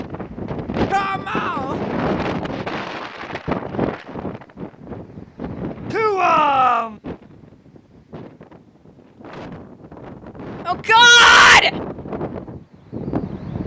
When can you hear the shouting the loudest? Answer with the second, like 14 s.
11 s.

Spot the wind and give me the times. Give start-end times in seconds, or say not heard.
0.0-13.6.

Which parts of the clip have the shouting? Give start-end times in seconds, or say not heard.
0.9-1.8, 5.9-7.0, 10.7-11.7.